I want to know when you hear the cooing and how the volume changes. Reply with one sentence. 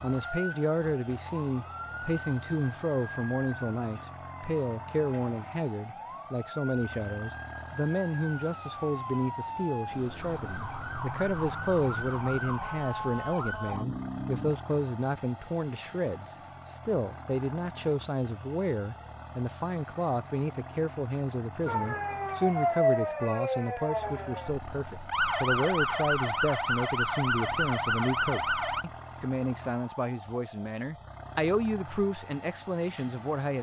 The cooing can't be heard in this clip.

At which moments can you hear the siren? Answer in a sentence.
You can hear the siren from 0.0 to 14.6 s and from 21.6 to 28.9 s.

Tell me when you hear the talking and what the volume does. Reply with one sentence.
The talking can be heard from 0.0 to 33.5 s, at a steady volume.